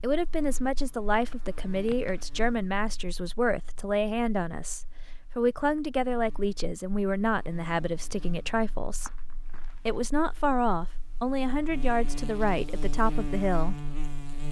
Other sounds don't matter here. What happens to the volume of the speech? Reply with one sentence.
The loudness of the speech stays about the same.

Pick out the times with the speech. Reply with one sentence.
You can hear the speech from 0.0 to 9.1 s and from 9.8 to 13.8 s.